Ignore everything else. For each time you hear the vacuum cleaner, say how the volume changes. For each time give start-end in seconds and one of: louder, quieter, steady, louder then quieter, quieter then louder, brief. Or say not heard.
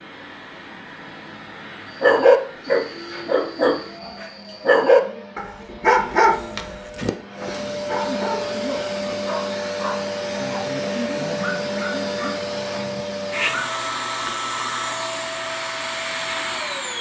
0.0-16.9 louder.